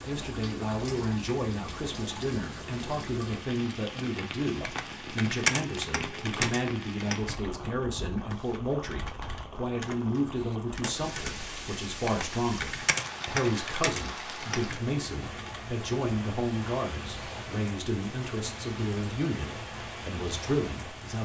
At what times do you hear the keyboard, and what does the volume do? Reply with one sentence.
The keyboard can be heard from 4.5 to 15.6 s, getting quieter then louder.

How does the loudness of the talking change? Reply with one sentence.
The loudness of the talking stays about the same.